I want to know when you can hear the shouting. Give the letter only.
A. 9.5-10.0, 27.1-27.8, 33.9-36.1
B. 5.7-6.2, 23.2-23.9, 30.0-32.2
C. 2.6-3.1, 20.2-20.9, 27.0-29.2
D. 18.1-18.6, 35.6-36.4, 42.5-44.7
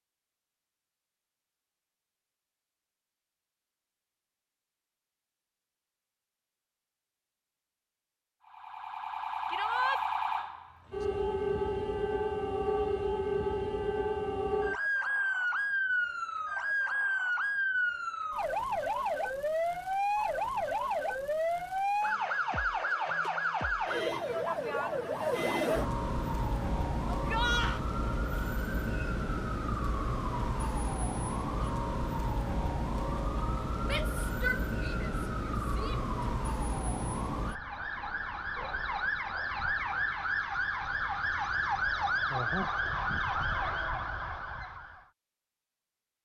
A.